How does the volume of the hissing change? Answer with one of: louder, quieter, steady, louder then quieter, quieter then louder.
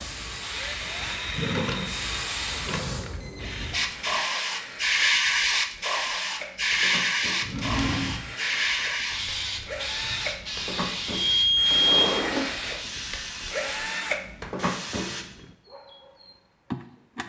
louder then quieter.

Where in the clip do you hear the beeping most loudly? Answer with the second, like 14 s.
12 s.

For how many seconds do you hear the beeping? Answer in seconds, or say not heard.
3 s.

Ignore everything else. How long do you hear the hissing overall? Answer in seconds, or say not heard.
15 s.